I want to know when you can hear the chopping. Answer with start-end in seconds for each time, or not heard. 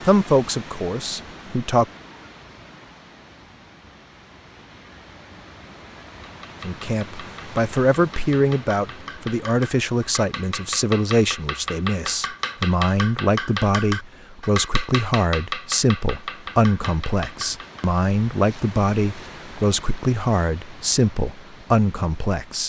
6.2-17.9.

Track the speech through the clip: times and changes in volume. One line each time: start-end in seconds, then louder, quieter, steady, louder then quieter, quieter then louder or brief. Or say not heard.
0.1-1.9 brief
6.6-22.6 steady.